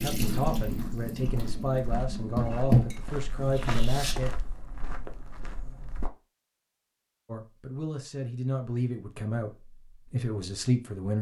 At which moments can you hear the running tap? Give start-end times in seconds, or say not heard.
0.0-4.2.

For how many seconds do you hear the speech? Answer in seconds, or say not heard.
8 s.